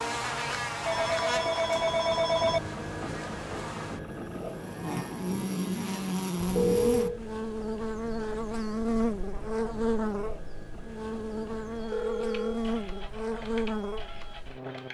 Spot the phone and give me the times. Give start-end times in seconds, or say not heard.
0.8-2.6, 6.3-7.2, 11.9-12.6.